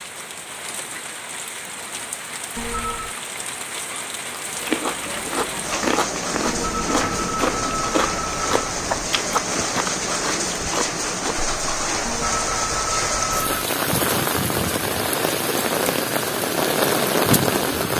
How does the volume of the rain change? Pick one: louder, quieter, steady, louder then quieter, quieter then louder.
louder.